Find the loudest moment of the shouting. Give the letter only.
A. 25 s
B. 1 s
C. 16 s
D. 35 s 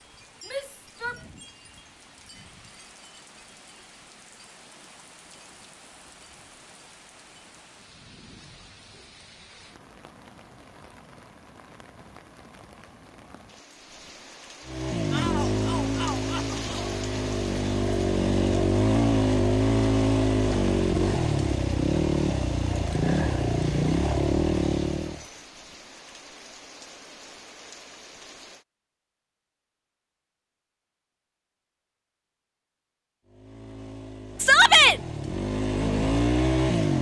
D.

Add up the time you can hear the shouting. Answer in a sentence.
You can hear the shouting for 3 seconds altogether.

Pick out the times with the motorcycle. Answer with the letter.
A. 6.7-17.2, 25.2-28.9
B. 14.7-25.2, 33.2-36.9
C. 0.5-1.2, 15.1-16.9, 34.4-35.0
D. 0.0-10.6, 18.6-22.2
B.